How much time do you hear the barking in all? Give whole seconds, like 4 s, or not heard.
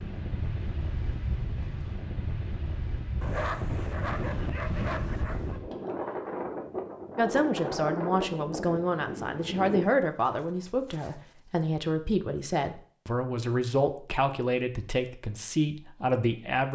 4 s.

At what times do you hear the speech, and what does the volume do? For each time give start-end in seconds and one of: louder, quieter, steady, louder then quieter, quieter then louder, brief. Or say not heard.
7.2-16.7 steady.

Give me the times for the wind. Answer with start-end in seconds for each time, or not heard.
0.0-9.8.